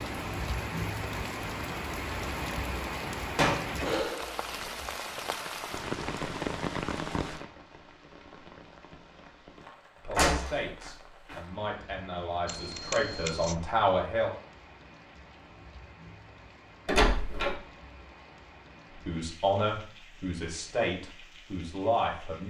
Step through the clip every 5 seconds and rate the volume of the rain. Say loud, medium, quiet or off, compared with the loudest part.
loud, loud, quiet, quiet, quiet.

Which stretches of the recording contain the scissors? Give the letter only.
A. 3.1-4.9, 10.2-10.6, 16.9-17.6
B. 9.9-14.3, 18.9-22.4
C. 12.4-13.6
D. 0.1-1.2
C.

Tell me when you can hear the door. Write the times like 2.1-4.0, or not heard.
3.1-4.9, 10.2-10.6, 16.9-17.6.